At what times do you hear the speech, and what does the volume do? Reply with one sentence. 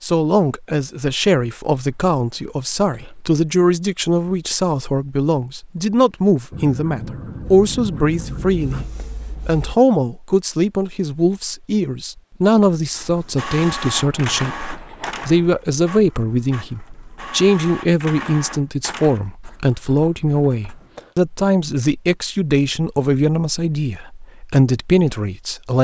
You can hear the speech from 0.0 to 25.7 s, at a steady volume.